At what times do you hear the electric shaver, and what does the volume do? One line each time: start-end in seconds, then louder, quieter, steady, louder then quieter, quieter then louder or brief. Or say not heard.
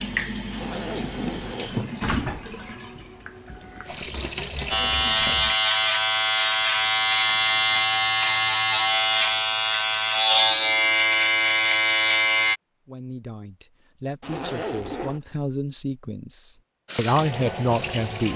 4.7-12.6 steady.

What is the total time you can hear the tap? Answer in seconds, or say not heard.
7 s.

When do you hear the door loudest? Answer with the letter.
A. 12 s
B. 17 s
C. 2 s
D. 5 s
C.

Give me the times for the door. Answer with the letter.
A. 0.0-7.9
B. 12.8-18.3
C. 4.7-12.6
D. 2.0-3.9
D.